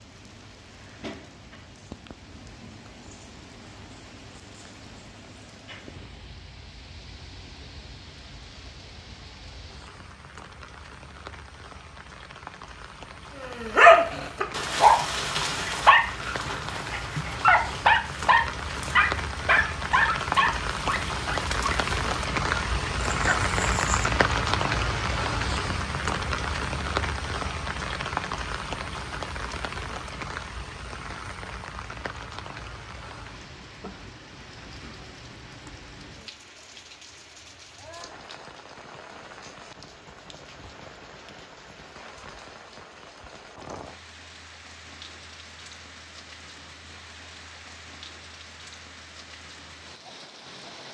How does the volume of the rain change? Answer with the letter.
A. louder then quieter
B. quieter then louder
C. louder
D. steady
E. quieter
A.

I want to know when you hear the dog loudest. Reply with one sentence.
The loudest moment of the dog is at 14 seconds.